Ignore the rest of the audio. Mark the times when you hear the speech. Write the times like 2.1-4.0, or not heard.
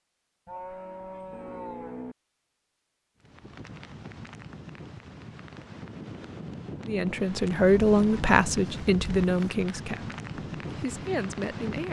6.8-11.8.